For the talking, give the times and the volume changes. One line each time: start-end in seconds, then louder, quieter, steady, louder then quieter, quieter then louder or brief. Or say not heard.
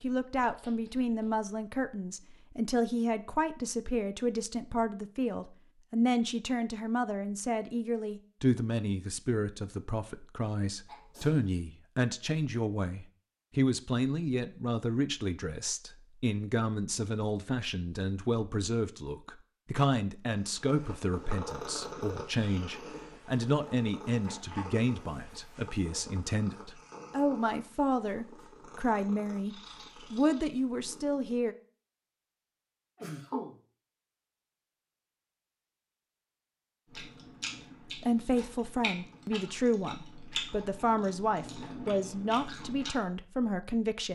0.0-31.6 steady
37.9-44.1 steady.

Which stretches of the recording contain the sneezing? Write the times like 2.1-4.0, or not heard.
10.8-11.4, 33.0-33.5.